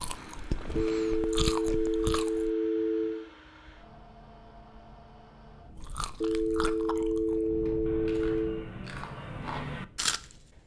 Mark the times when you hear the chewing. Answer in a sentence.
The chewing can be heard from 0.0 to 2.5 s and from 5.8 to 10.2 s.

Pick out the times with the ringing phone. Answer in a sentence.
The ringing phone can be heard from 0.8 to 3.2 s and from 6.2 to 8.7 s.